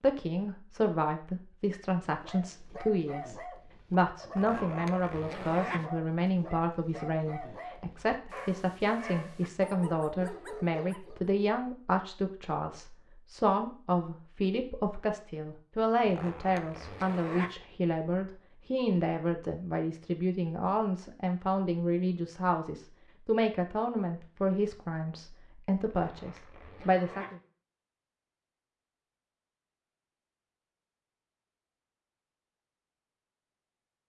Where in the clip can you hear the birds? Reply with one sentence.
The birds can't be heard in this clip.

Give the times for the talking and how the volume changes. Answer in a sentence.
The talking can be heard from 0.0 to 27.4 s, at a steady volume.